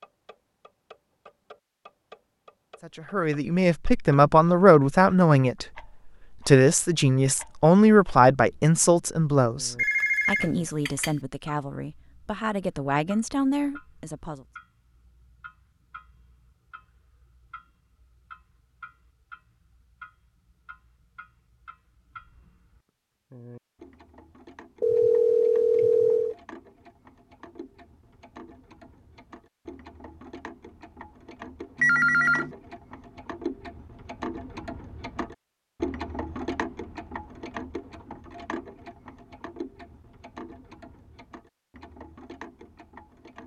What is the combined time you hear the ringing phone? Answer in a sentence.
You can hear the ringing phone for 4 seconds altogether.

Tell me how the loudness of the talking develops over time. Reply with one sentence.
The volume of the talking goes down.